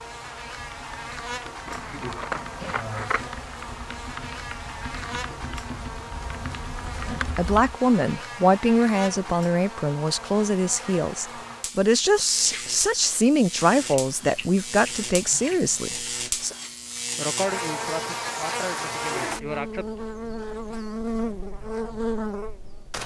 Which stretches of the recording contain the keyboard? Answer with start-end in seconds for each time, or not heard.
0.0-7.8.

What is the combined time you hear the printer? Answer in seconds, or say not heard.
not heard.